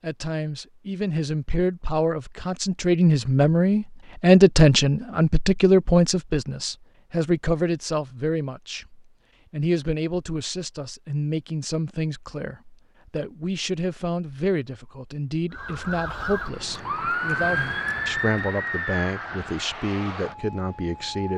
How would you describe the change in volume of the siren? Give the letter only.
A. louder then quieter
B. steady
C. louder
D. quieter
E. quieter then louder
A.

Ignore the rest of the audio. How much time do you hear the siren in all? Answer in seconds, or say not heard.
6 s.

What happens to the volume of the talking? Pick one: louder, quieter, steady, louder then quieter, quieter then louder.
quieter.